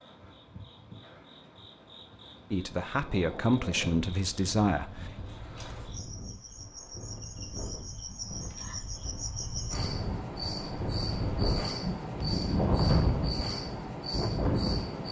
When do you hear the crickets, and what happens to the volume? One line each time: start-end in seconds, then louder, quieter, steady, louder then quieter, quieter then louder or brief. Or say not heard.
0.0-15.0 louder.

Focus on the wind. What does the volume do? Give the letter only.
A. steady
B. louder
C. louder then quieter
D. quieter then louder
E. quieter
B.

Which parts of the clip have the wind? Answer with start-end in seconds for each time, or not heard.
2.9-15.0.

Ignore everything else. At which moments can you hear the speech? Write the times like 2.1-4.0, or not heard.
2.5-5.2.